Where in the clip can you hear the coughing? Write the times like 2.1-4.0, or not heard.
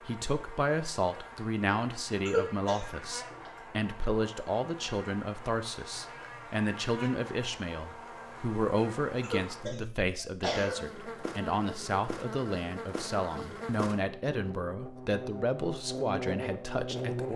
2.2-3.5, 9.2-10.8.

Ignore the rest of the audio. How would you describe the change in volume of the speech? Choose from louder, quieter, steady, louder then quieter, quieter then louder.
steady.